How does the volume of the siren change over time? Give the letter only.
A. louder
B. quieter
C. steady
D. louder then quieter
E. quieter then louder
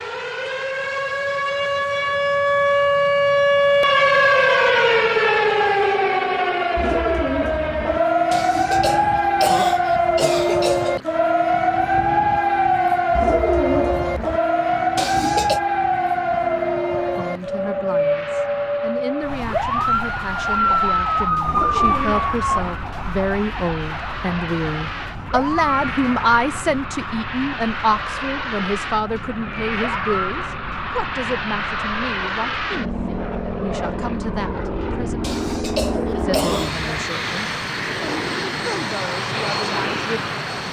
B.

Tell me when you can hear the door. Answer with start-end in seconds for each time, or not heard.
not heard.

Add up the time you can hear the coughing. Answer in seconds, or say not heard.
5 s.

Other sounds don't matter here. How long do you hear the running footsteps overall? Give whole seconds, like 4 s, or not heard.
not heard.